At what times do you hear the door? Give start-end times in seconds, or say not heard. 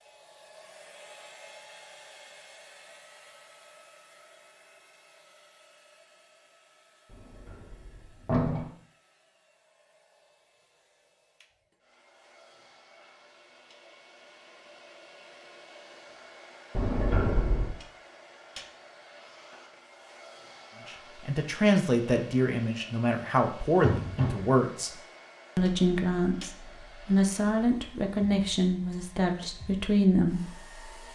7.1-8.7, 16.8-17.8, 23.8-24.6.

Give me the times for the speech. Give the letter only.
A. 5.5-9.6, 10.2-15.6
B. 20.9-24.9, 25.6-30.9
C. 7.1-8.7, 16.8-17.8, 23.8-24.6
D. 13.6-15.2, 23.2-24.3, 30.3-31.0
B.